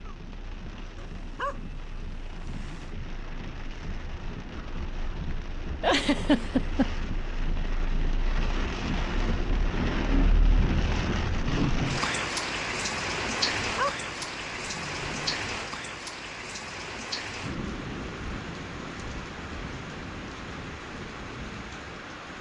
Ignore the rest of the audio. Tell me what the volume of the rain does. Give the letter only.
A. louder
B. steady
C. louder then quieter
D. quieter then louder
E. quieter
C.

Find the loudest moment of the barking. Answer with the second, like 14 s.
14 s.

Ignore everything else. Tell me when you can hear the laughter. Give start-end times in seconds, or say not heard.
5.8-7.0.